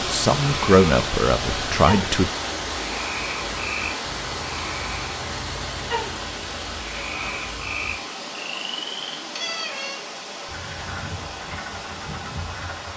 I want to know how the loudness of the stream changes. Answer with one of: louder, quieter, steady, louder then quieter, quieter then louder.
quieter.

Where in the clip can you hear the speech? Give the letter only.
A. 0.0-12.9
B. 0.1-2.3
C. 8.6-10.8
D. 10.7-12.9
B.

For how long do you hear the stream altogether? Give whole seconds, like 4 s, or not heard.
13 s.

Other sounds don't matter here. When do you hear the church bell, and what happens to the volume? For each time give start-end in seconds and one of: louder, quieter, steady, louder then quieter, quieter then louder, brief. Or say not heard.
not heard.